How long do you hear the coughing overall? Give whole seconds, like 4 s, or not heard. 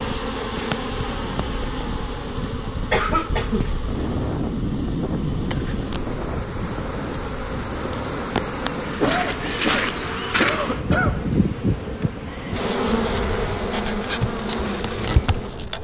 3 s.